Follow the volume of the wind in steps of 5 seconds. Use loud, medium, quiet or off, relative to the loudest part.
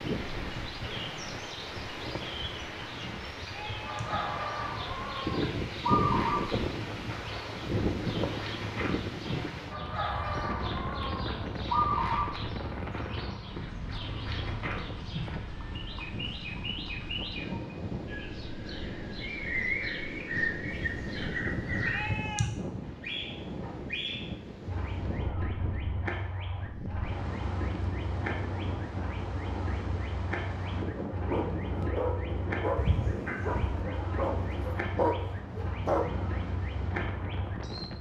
medium, loud, medium, medium, medium, medium, medium, medium.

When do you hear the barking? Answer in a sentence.
The barking can be heard from 31.1 to 36.3 s.